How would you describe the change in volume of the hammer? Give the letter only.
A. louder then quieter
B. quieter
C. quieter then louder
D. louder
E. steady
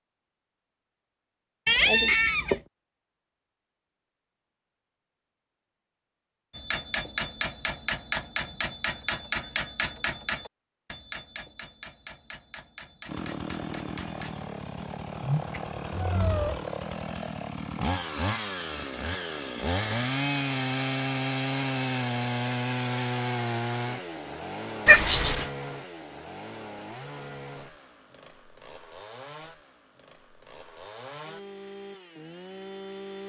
B.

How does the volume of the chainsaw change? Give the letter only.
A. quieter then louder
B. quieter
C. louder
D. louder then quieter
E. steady
D.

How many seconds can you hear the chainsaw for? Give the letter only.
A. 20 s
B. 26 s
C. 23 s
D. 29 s
A.